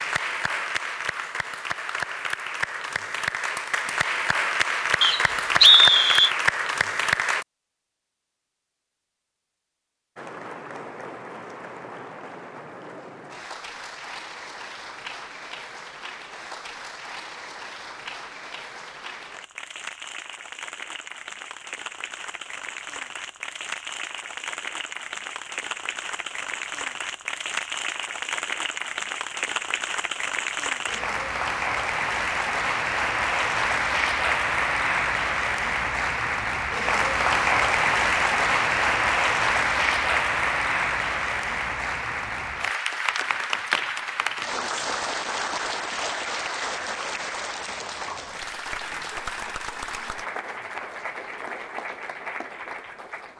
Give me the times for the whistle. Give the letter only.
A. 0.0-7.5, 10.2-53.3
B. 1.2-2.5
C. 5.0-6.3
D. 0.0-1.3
C.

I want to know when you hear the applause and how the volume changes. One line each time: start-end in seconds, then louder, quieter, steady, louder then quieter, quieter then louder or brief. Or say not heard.
0.0-7.5 louder
10.2-53.3 louder then quieter.